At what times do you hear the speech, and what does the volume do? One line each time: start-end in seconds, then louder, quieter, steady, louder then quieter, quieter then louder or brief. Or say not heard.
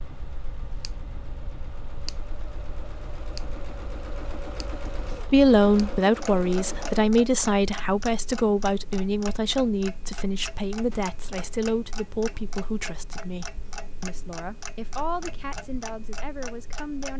5.3-17.1 quieter.